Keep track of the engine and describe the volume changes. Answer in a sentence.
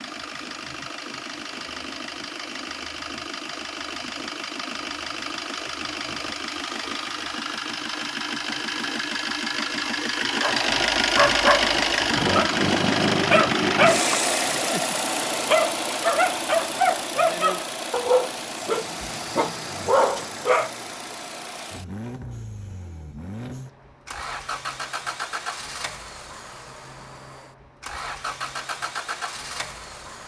The loudness of the engine goes up, then down.